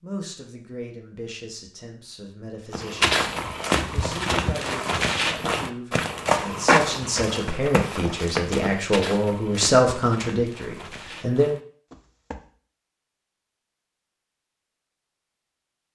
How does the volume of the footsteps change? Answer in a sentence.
The loudness of the footsteps goes down.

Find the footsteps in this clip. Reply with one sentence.
The footsteps can be heard from 2.7 to 12.5 s.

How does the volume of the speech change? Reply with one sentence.
The volume of the speech goes up.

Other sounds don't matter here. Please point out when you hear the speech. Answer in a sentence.
You can hear the speech from 0.0 to 11.5 s.